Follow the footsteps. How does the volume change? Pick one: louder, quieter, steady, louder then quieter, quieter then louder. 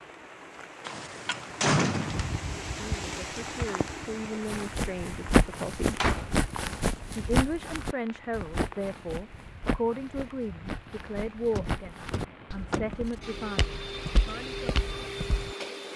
quieter.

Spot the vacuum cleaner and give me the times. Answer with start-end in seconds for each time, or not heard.
13.2-15.9.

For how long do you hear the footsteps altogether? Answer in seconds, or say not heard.
11 s.